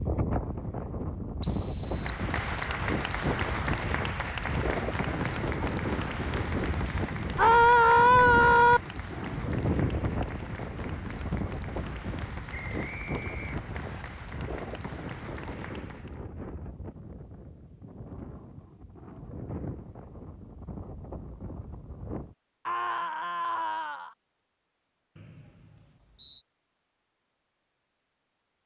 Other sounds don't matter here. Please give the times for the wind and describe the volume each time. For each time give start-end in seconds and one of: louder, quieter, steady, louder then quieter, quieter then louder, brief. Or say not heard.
0.0-22.4 quieter.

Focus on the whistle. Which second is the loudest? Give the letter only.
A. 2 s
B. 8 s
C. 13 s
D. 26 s
A.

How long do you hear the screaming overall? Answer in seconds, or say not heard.
3 s.